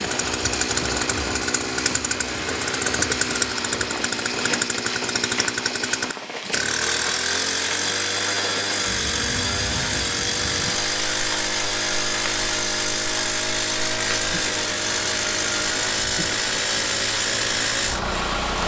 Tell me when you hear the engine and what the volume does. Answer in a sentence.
You can hear the engine from 0.0 to 18.6 s, at a steady volume.